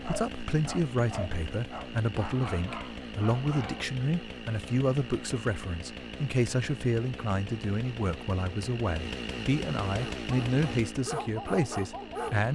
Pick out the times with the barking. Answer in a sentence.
The barking can be heard from 0.0 to 3.9 s and from 9.9 to 12.5 s.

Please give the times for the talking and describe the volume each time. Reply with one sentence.
You can hear the talking from 0.0 to 12.5 s, at a steady volume.